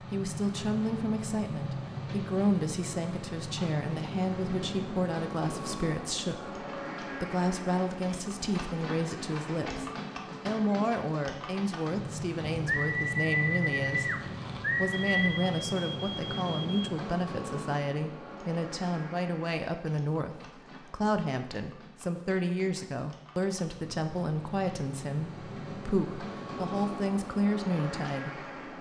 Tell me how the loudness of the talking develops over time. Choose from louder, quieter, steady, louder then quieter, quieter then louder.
steady.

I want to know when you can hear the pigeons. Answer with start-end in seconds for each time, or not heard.
12.7-15.2.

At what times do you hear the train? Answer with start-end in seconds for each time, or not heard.
0.0-28.7.